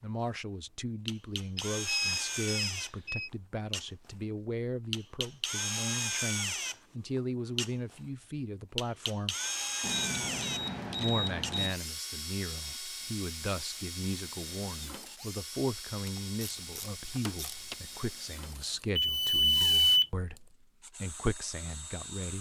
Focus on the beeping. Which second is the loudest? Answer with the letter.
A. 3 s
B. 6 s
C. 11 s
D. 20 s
D.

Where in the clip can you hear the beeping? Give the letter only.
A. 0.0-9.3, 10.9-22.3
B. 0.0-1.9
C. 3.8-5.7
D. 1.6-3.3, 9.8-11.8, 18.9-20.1
D.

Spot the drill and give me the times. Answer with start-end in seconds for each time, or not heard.
0.0-22.3.